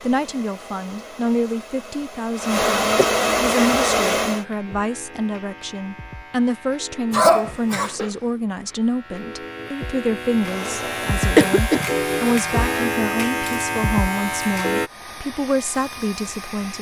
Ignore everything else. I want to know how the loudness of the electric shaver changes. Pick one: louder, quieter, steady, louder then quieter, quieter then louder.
louder.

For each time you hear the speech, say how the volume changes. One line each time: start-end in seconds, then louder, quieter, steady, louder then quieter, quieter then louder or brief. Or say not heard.
0.0-16.7 steady.